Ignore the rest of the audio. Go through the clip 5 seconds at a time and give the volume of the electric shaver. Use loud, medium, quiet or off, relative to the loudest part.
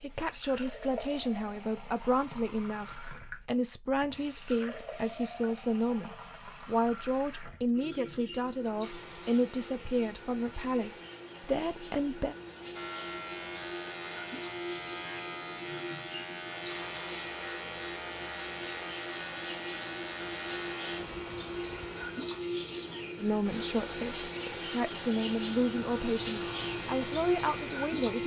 off, off, loud, loud, loud, loud.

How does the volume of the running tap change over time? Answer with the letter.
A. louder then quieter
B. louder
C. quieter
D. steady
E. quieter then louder
B.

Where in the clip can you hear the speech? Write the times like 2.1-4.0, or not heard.
0.0-12.3, 23.1-28.2.